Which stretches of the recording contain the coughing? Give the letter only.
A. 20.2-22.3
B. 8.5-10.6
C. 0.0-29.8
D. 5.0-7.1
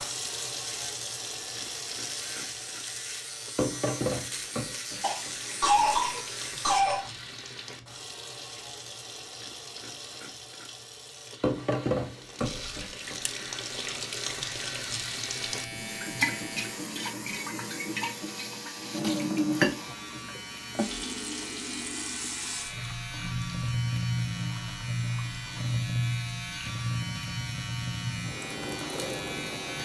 D.